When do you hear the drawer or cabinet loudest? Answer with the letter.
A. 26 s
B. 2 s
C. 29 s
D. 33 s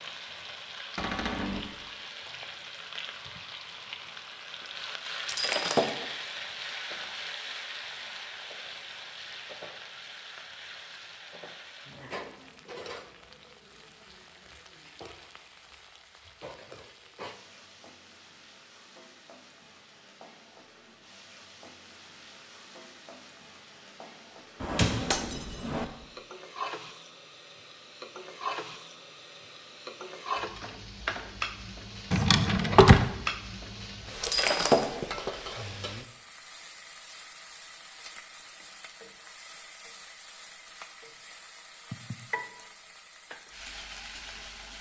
D.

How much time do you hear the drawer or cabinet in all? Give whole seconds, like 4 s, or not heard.
3 s.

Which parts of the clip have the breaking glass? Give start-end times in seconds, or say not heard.
5.2-6.0, 25.1-25.9, 34.2-34.9.